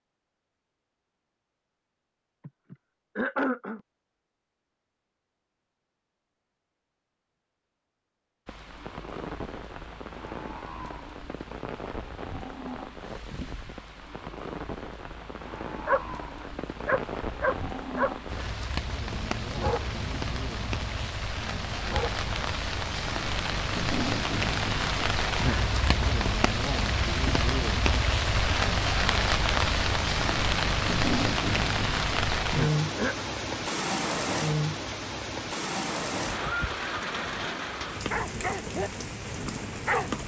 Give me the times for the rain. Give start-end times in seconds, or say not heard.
8.4-40.2.